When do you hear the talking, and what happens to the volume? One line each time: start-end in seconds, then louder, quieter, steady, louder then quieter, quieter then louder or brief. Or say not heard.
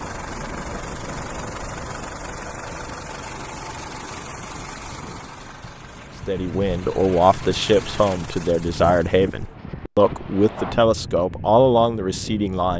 6.2-12.7 steady.